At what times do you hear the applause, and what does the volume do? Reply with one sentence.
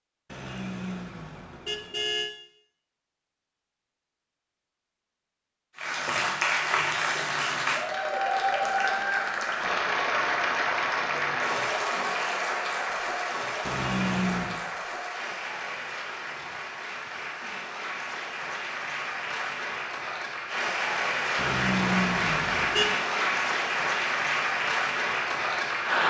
The applause can be heard from 5.8 to 26.0 s, getting quieter then louder.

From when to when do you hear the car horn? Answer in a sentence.
You can hear the car horn from 0.3 to 2.3 s, from 13.6 to 14.6 s and from 21.4 to 22.9 s.